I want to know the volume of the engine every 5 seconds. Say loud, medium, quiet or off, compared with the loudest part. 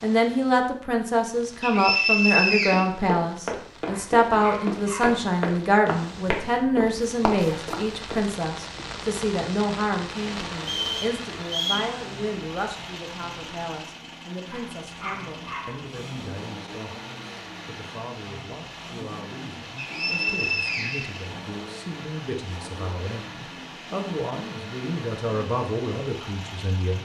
off, off, loud, loud, loud, loud.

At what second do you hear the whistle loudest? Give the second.
2 s.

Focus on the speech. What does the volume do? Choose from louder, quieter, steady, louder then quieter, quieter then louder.
quieter then louder.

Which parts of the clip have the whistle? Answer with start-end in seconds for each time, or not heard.
1.6-2.9, 10.6-11.9, 19.8-21.2.